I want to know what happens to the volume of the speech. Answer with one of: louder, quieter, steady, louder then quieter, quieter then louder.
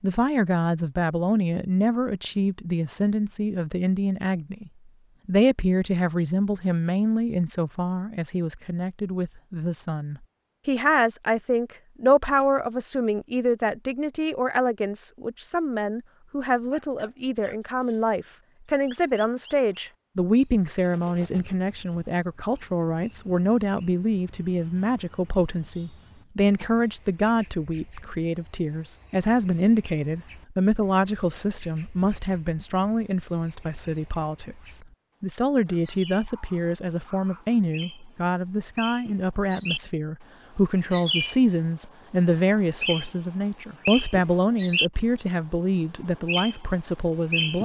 steady.